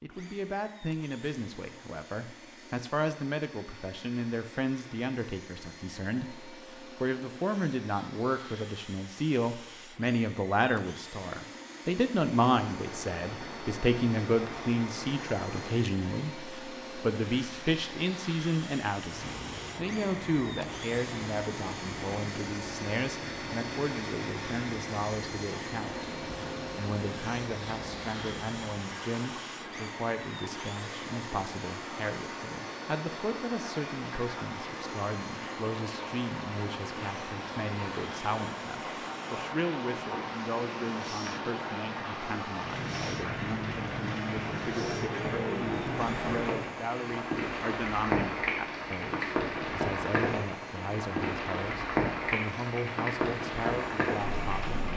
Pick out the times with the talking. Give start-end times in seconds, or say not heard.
0.0-54.9.